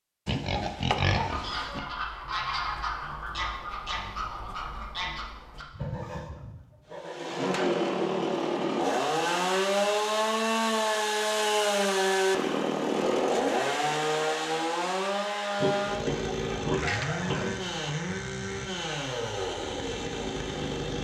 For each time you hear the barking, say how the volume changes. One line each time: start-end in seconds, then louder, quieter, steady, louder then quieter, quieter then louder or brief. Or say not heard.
not heard.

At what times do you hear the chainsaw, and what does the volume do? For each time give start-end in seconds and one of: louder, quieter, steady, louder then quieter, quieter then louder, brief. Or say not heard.
6.9-20.9 quieter.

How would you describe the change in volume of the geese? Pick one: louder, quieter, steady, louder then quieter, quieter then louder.
quieter.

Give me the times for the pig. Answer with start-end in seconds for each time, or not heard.
0.2-1.8, 15.6-17.6.